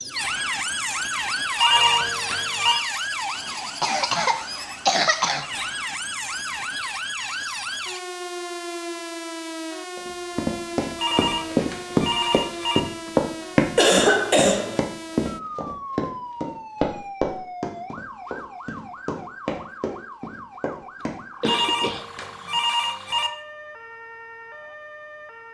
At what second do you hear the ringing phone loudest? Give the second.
2 s.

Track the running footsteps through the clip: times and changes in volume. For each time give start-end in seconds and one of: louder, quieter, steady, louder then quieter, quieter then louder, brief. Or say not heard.
9.9-22.2 quieter.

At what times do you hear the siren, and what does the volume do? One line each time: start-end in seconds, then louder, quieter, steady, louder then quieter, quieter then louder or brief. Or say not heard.
0.0-25.5 quieter.